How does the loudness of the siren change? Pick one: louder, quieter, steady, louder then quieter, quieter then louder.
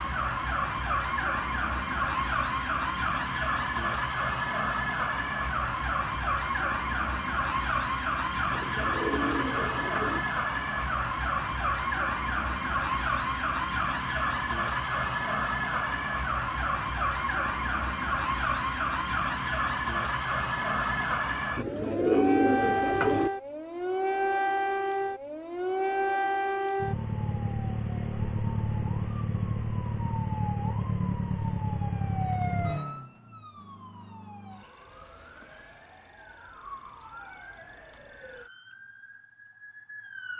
quieter.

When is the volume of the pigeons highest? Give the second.
22 s.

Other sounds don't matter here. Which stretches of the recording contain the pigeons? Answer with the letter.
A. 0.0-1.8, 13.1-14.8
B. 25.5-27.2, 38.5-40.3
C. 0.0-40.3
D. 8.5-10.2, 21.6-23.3
D.